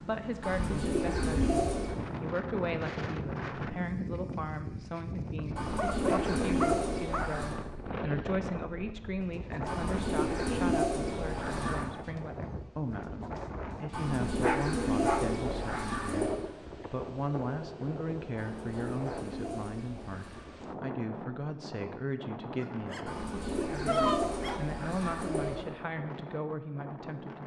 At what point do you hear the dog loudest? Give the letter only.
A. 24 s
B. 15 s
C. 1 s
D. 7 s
A.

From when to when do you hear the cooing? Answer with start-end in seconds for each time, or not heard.
0.4-1.9, 5.5-7.6, 9.7-11.8, 13.9-16.4, 18.4-20.4, 23.1-25.6.